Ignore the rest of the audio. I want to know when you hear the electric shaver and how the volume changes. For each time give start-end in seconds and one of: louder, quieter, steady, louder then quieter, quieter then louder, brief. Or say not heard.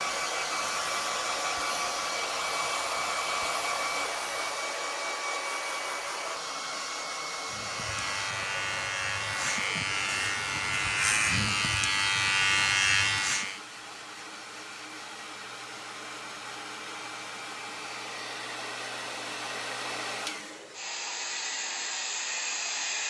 0.0-4.8 steady
7.5-13.6 louder.